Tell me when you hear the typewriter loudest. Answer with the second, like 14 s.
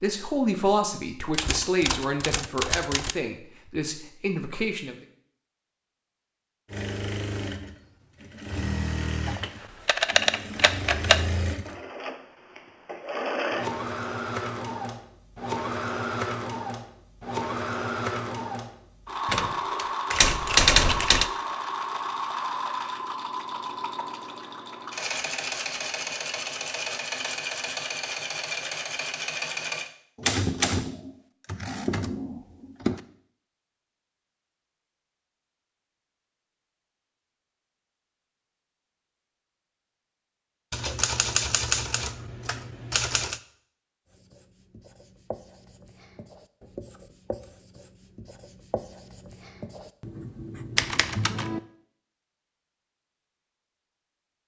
21 s.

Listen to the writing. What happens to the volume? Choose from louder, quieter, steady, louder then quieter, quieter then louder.
louder.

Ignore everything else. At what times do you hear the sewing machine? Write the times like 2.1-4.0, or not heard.
6.7-29.9.